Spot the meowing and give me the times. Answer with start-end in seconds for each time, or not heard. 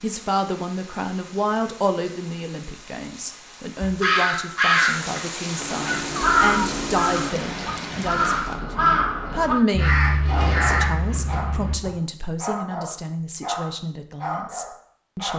5.5-7.3.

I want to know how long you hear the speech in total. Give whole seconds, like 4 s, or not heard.
15 s.